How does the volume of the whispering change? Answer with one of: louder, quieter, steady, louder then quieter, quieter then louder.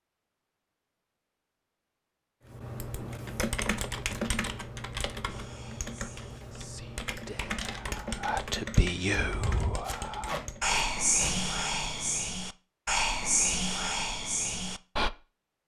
louder.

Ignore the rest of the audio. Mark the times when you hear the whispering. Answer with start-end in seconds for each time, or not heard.
5.2-15.1.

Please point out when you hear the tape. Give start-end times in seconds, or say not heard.
9.8-11.3.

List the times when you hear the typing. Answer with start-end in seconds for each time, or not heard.
2.5-10.7.